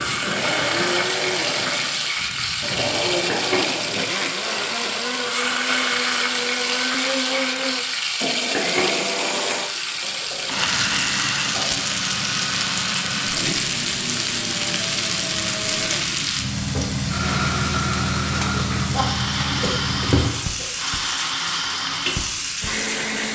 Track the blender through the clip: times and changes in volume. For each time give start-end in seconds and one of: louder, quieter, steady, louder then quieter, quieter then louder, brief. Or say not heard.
0.0-23.3 steady.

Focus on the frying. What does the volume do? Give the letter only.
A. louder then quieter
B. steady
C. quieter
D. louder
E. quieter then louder
B.